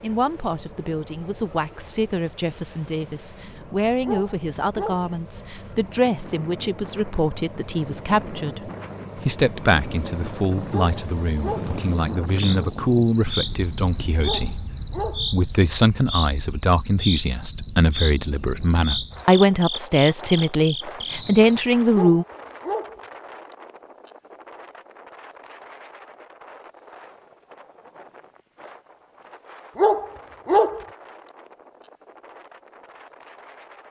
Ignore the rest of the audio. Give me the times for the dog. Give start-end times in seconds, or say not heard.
4.0-5.1, 10.7-11.8, 14.2-15.3, 21.9-23.0, 29.8-30.9.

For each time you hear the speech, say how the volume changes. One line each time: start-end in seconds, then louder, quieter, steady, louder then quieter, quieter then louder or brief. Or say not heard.
0.0-22.2 louder.